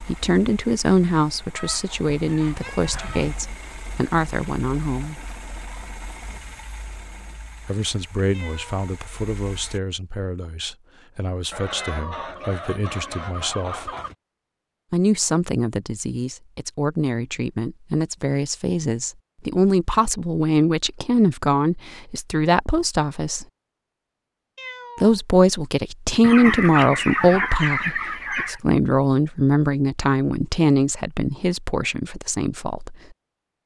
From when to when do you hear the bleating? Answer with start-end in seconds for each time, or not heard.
not heard.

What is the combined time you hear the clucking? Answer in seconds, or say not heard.
7 s.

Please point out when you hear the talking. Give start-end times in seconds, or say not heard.
0.0-5.2, 7.7-13.9, 14.9-23.4, 25.0-33.0.